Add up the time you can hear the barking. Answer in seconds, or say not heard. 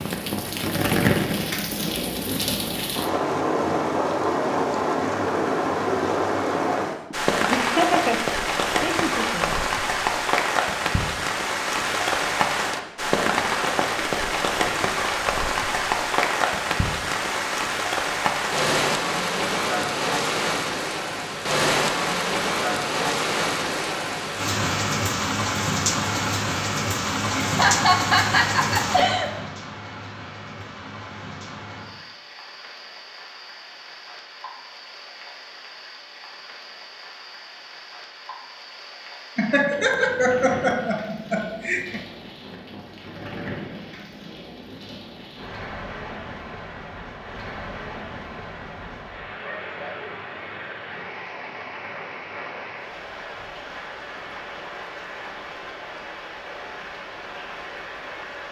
not heard.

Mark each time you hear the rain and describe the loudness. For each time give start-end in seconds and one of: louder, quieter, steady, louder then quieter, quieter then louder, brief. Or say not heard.
0.0-58.4 quieter.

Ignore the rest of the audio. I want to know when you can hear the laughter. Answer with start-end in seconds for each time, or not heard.
7.1-9.6, 27.4-29.3, 39.4-42.0.